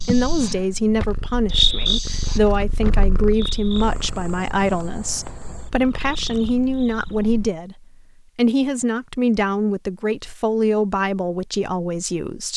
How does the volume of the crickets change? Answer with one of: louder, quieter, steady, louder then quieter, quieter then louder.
quieter.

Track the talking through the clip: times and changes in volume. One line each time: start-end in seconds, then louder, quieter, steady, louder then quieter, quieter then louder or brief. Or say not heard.
0.1-12.5 steady.